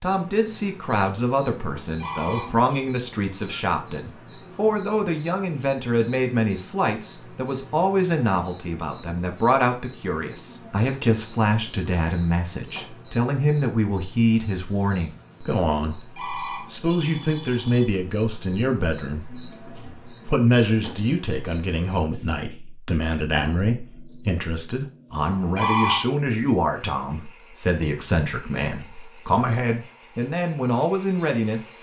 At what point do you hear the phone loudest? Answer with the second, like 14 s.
26 s.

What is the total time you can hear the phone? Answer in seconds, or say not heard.
4 s.